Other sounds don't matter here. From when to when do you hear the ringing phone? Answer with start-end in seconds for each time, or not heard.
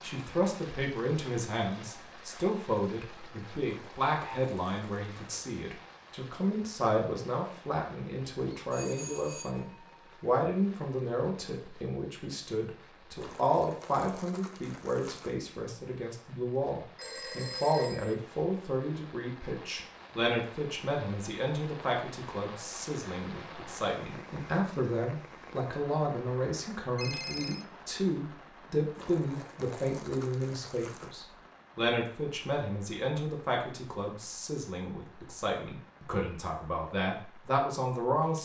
8.7-10.0, 16.9-18.1, 26.9-27.6.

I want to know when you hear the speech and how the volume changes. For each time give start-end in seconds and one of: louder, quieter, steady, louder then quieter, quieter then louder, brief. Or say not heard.
0.0-38.3 steady.